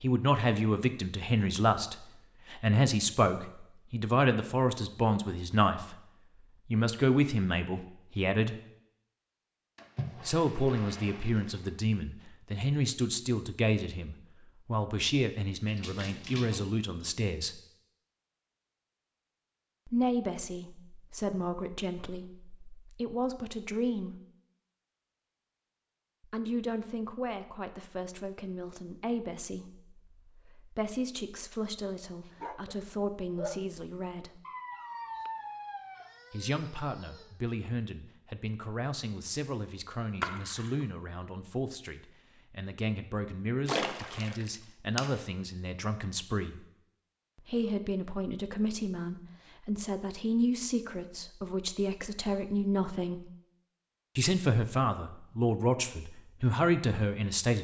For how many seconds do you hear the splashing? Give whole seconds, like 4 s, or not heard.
5 s.